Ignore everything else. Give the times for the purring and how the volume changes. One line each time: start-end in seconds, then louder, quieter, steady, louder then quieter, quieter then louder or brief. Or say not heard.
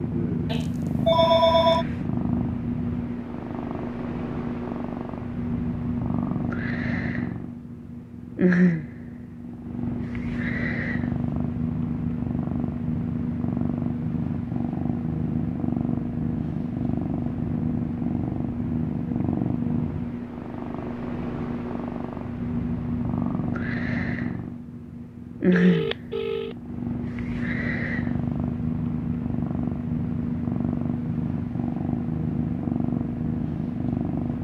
0.0-34.3 steady.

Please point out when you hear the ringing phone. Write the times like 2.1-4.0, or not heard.
0.5-1.9, 25.5-26.6.